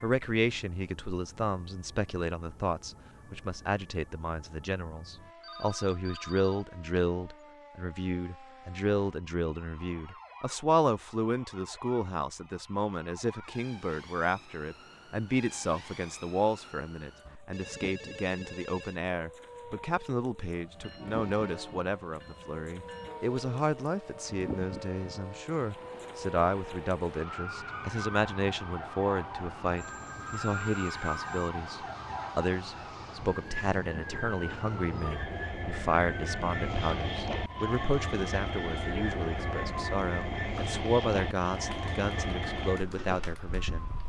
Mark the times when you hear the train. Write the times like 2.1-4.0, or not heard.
20.6-44.0.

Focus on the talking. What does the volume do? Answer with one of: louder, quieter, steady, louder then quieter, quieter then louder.
steady.